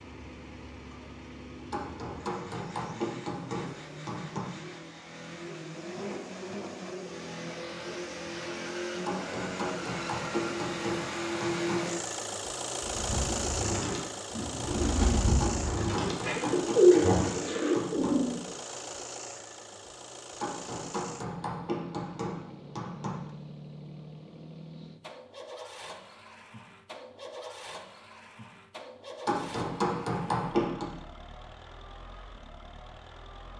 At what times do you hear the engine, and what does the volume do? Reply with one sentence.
You can hear the engine from 0.0 to 33.5 s, getting louder then quieter.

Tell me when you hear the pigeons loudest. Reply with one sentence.
The volume of the pigeons peaks at 17 seconds.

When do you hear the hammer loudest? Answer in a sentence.
The volume of the hammer peaks at 30 seconds.